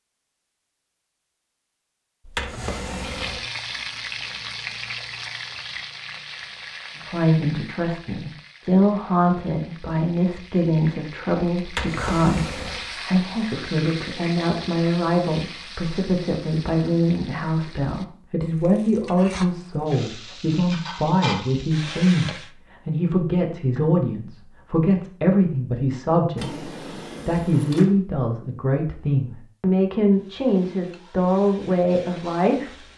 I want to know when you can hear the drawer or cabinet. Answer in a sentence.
The drawer or cabinet can be heard from 2.2 to 3.5 s, from 11.7 to 12.8 s and from 26.4 to 27.9 s.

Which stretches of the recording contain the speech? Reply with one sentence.
You can hear the speech from 7.0 to 26.6 s and from 27.2 to 32.8 s.